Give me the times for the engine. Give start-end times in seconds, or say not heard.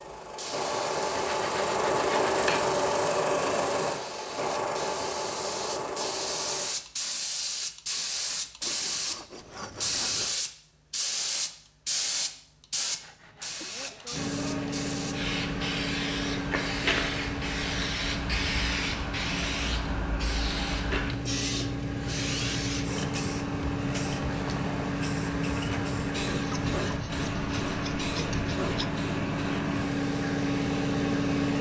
0.0-6.7, 14.1-31.5.